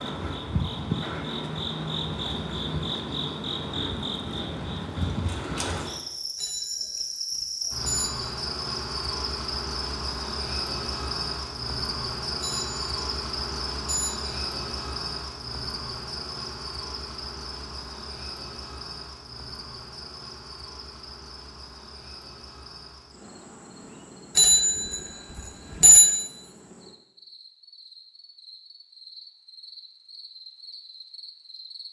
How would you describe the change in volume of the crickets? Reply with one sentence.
The loudness of the crickets goes down.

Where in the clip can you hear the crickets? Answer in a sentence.
The crickets can be heard from 0.0 to 31.8 s.